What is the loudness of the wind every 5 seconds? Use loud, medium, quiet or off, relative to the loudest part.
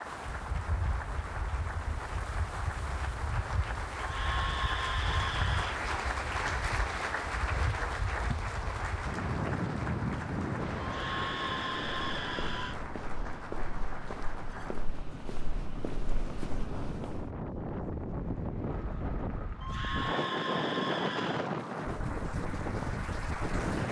medium, medium, medium, medium, loud.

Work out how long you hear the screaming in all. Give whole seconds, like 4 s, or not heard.
6 s.